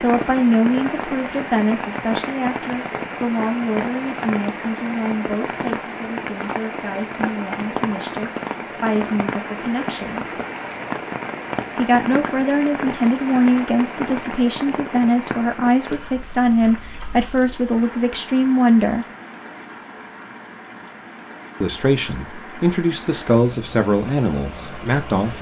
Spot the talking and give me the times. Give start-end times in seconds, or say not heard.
0.0-10.3, 11.8-19.1, 21.6-25.3.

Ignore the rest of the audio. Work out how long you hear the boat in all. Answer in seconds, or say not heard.
not heard.